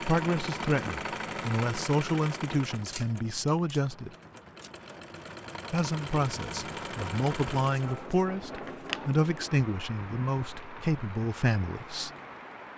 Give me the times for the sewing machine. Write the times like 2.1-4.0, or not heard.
0.0-8.1.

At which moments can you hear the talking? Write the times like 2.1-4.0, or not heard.
0.0-4.1, 5.7-12.1.